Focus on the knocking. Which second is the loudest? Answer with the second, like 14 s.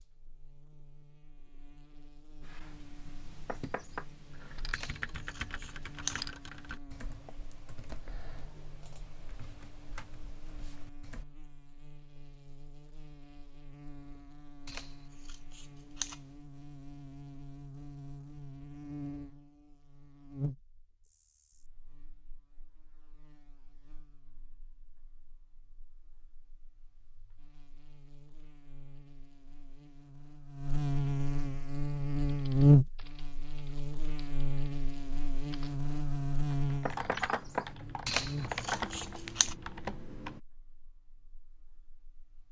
37 s.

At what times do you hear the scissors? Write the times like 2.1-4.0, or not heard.
4.7-6.2, 14.7-16.2, 38.0-39.5.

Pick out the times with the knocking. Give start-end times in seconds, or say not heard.
3.5-4.0, 36.9-37.7.